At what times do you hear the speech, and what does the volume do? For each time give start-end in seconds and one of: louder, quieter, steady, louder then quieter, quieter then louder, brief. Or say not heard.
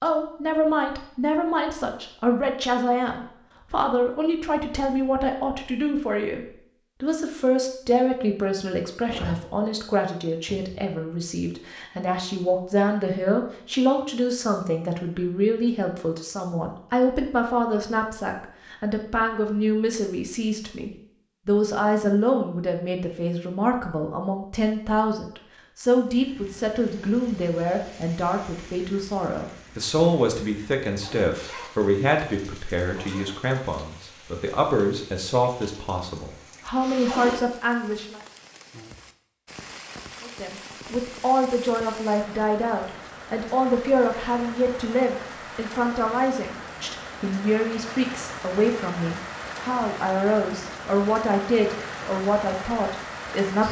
0.0-38.2 steady
40.2-53.6 steady.